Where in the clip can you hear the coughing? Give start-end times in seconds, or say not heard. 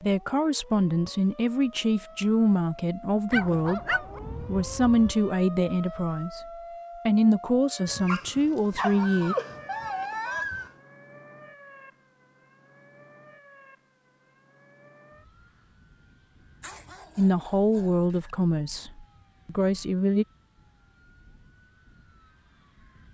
not heard.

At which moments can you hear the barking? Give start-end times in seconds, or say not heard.
3.3-5.2, 7.8-10.7, 16.6-18.4.